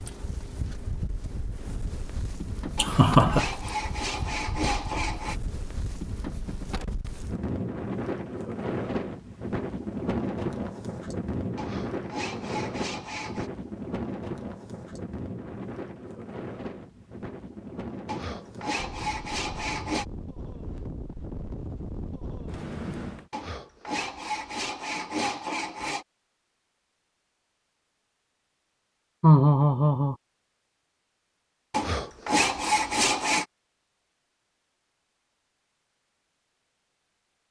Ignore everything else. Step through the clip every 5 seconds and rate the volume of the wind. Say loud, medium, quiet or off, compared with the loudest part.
medium, loud, loud, medium, medium, off, off, off.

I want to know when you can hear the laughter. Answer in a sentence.
The laughter can be heard from 2.8 to 3.5 s and from 29.2 to 30.1 s.